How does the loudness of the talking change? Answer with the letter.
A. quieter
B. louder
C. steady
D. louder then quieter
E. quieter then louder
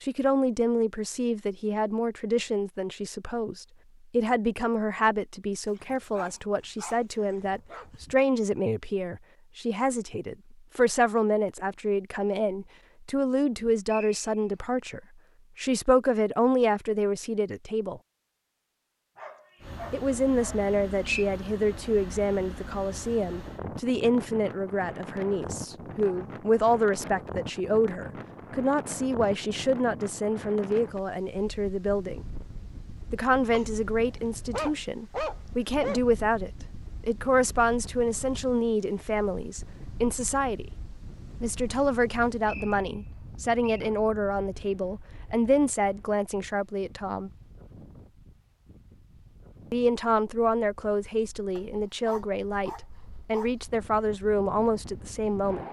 C.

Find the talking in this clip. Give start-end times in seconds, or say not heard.
0.0-18.0, 19.9-32.2, 33.1-40.7, 41.4-47.3, 49.7-55.6.